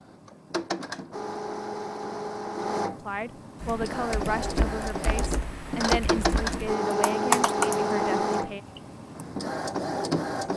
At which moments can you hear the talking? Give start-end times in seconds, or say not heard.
2.9-8.6.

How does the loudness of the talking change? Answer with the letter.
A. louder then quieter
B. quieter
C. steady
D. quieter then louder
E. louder
C.